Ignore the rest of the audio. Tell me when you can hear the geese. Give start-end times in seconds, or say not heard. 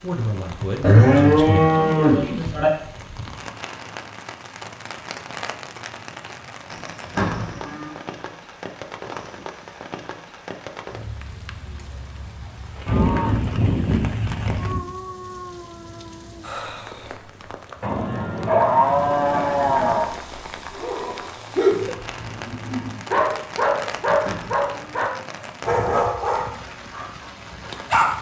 not heard.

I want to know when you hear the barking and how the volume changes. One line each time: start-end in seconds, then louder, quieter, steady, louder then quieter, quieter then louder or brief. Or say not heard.
20.8-28.1 quieter.